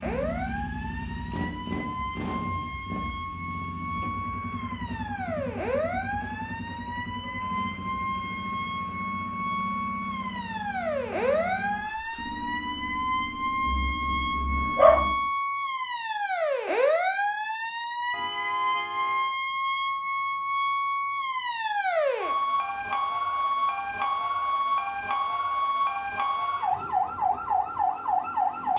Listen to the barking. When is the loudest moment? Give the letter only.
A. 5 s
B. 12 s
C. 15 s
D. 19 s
C.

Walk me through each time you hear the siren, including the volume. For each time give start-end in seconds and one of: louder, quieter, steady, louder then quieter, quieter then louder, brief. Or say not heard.
0.0-28.7 louder.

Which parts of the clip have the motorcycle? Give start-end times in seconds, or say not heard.
0.0-15.3.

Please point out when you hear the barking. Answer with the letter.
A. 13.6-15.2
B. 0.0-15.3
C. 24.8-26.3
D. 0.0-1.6
A.